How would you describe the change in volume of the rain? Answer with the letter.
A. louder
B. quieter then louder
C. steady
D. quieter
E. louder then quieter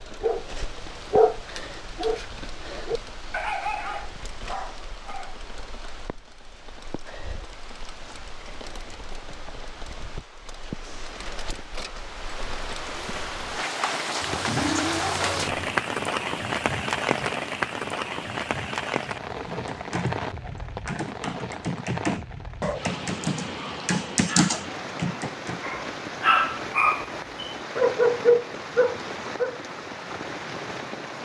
E.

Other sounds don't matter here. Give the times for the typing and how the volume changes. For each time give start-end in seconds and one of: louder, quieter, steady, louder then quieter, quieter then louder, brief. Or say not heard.
19.4-25.6 louder.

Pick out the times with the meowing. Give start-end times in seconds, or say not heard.
14.2-15.8.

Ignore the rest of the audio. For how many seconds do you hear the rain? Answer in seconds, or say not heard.
31 s.